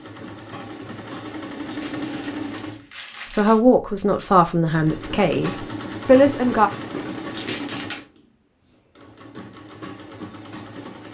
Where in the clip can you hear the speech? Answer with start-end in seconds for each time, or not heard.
3.4-6.7.